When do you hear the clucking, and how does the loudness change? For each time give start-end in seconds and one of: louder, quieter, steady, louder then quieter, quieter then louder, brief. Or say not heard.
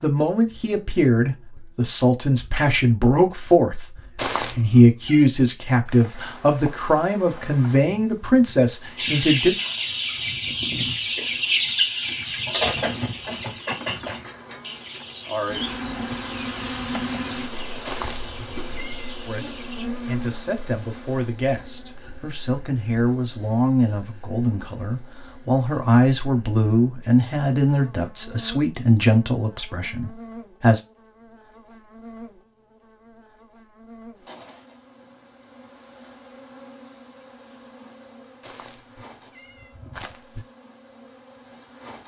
8.9-19.9 quieter.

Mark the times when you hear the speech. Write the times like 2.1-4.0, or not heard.
0.0-4.0, 4.5-9.6, 19.2-30.8.